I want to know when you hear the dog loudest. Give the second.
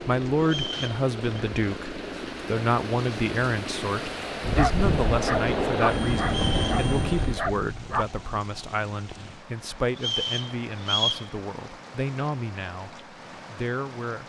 5 s.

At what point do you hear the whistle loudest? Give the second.
11 s.